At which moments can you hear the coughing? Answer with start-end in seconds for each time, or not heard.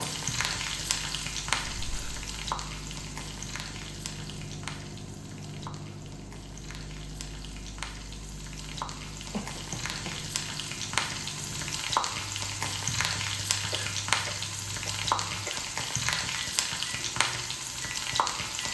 1.8-2.2, 9.3-10.2, 13.7-15.6.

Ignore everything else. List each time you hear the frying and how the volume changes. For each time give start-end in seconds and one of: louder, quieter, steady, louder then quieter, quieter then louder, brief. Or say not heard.
0.0-18.6 quieter then louder.